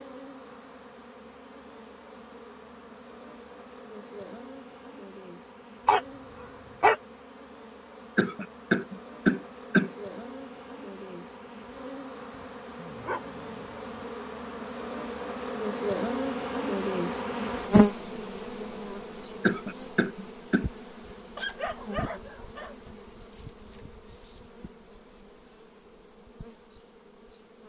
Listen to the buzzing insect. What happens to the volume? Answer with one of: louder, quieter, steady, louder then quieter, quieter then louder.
louder then quieter.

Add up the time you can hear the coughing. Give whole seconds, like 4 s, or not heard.
3 s.